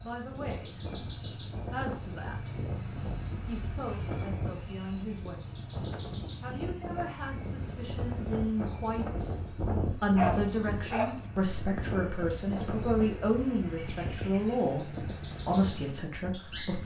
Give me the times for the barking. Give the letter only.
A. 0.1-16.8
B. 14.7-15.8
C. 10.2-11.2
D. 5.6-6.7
C.